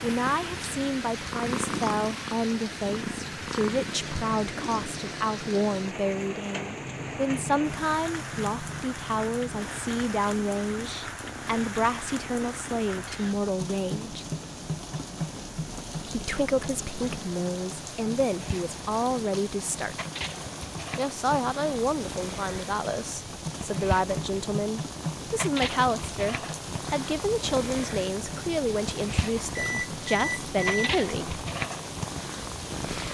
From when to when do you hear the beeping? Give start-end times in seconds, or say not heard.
29.5-30.9.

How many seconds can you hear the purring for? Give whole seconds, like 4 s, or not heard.
33 s.